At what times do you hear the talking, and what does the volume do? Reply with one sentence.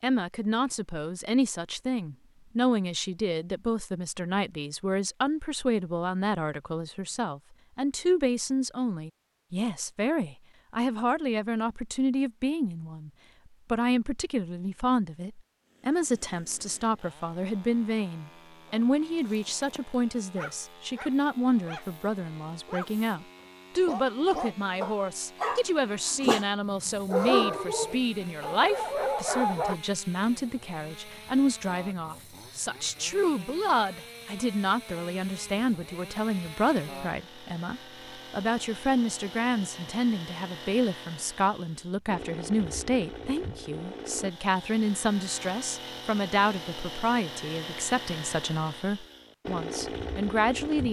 You can hear the talking from 0.0 to 13.1 s, at a steady volume; and from 13.7 to 50.8 s, at a steady volume.